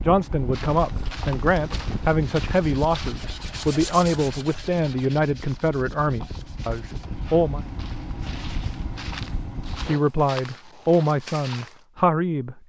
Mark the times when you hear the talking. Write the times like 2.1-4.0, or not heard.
0.0-7.6, 9.8-12.6.